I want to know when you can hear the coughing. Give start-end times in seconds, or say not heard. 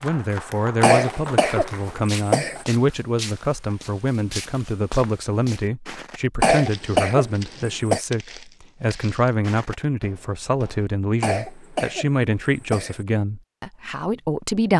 0.8-2.6, 6.4-8.0, 11.2-13.0.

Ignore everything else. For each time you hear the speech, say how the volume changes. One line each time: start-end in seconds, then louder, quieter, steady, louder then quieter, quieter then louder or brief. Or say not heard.
0.0-14.7 steady.